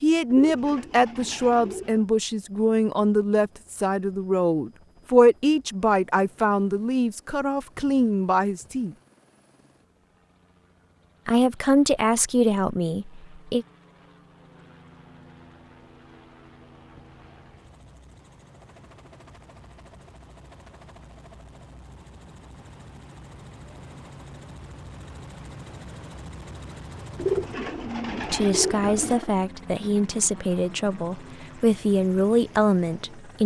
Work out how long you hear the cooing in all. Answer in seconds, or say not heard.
4 s.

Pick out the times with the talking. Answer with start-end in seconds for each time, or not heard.
0.0-8.9, 11.2-13.7, 28.1-33.4.